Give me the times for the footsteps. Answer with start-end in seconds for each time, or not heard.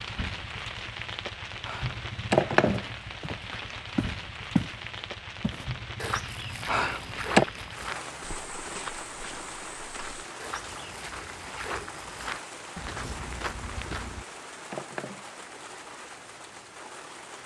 2.6-14.2.